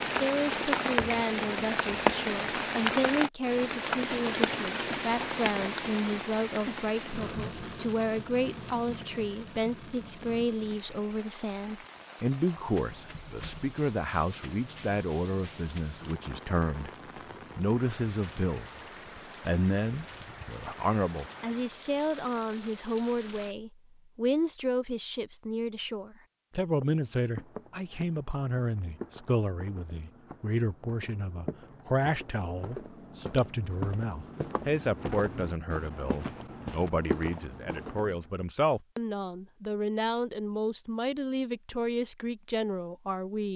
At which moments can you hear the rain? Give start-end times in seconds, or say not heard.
0.0-23.6.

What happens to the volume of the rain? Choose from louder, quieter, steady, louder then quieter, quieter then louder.
quieter.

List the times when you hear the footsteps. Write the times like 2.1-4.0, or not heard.
26.8-38.3.